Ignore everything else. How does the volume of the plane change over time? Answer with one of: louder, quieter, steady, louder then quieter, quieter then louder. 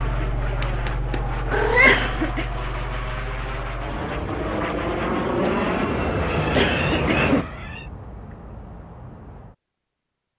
louder.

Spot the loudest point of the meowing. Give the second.
2 s.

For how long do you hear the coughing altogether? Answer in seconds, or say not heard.
2 s.